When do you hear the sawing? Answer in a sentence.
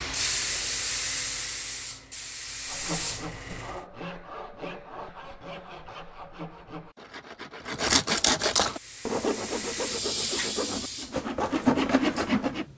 The sawing can be heard from 2.6 to 12.7 s.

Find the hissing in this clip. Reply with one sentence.
The hissing can be heard from 0.0 to 3.8 s and from 8.6 to 12.7 s.